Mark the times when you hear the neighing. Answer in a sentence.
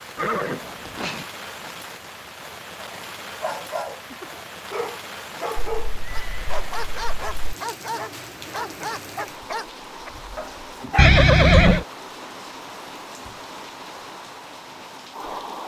The neighing can be heard from 0.1 to 1.2 s, from 5.5 to 7.5 s and from 10.9 to 11.8 s.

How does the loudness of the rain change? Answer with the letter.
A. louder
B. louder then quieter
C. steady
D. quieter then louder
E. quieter
C.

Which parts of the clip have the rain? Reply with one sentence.
The rain can be heard from 0.0 to 15.6 s.